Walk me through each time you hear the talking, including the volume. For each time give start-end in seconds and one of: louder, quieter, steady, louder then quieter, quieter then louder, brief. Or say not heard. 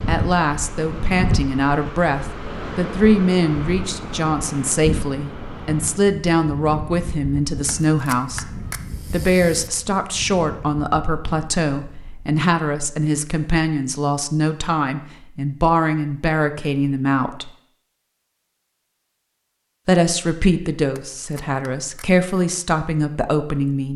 0.1-17.5 steady
19.9-23.9 quieter then louder.